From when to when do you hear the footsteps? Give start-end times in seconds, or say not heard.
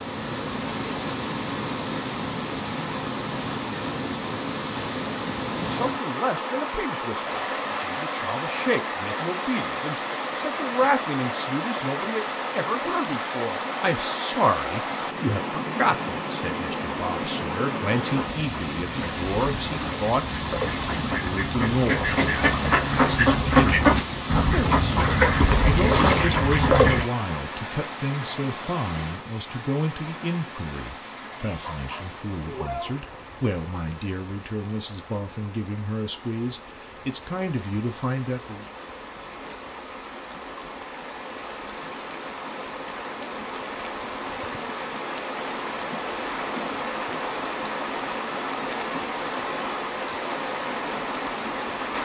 not heard.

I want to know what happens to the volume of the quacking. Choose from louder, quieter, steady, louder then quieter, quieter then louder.
louder.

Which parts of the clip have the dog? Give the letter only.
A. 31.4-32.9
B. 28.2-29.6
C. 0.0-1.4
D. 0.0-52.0
A.